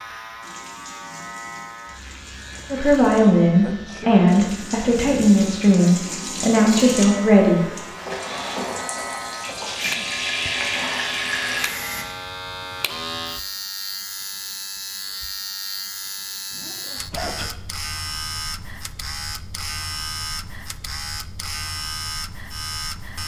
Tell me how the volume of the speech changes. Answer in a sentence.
The loudness of the speech stays about the same.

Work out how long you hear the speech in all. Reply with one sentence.
The speech can be heard for 5 seconds in total.